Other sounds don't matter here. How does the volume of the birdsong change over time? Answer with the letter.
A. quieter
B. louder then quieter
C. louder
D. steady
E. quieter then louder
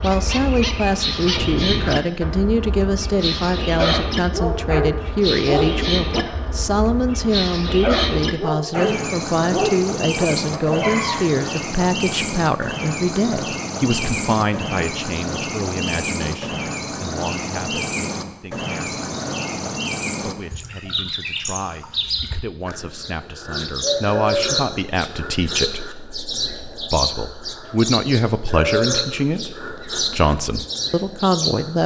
D.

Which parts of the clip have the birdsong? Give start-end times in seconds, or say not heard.
0.0-31.8.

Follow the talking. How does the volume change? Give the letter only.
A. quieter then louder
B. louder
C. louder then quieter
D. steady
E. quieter
A.